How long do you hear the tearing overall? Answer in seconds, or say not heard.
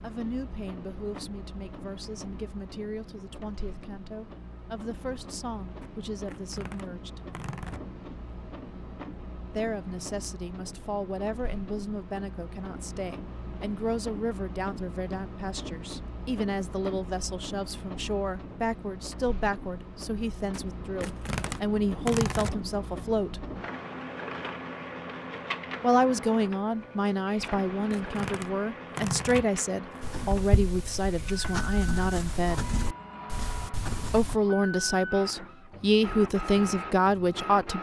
7 s.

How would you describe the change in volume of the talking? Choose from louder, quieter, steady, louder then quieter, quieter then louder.
louder.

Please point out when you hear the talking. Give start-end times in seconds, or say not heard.
0.0-7.2, 9.6-23.4, 25.8-32.6, 34.1-37.7.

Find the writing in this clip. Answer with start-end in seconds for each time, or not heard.
30.0-34.4.